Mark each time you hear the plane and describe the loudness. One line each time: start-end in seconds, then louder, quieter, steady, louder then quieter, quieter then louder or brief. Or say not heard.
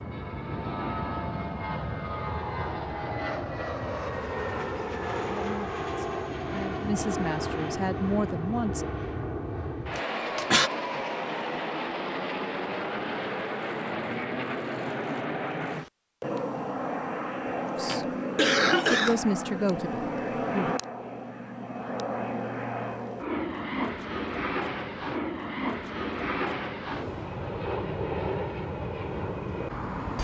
0.0-30.1 steady.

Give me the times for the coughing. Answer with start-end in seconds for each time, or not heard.
9.9-10.7, 17.4-19.1.